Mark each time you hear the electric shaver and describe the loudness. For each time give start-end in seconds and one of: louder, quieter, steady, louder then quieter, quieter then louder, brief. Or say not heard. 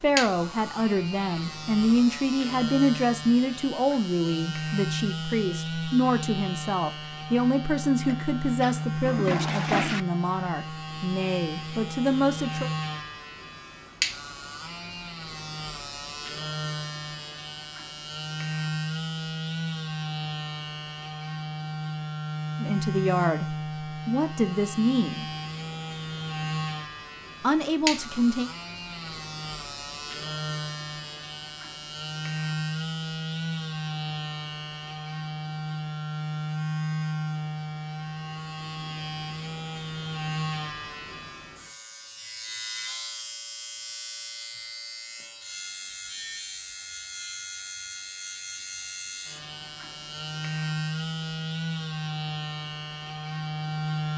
0.0-54.1 steady.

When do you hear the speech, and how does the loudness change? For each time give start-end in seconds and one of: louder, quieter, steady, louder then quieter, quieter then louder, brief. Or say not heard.
0.0-12.7 steady
22.6-25.2 brief
27.4-28.5 brief.